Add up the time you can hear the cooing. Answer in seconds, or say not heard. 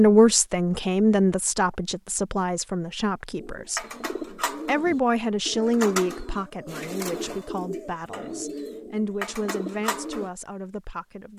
7 s.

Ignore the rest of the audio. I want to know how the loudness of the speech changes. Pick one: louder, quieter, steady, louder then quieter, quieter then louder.
quieter.